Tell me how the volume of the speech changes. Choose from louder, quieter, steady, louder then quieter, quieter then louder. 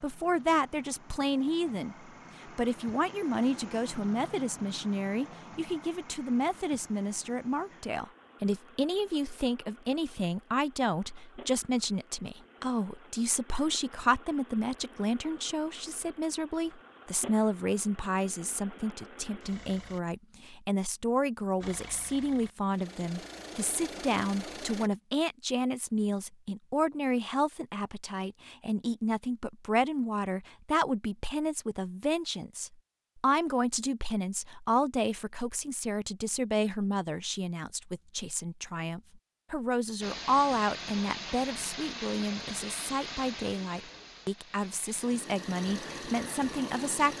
steady.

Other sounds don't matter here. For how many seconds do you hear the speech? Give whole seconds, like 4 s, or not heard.
47 s.